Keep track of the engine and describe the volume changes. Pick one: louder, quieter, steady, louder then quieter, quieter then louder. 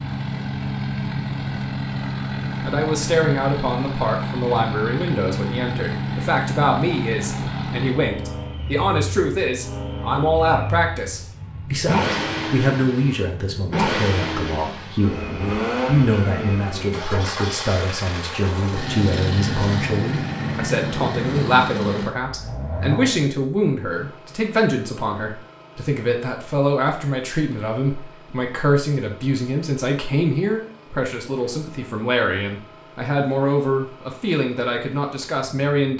quieter.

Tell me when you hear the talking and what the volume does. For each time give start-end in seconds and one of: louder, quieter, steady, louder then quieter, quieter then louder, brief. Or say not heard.
2.6-35.9 steady.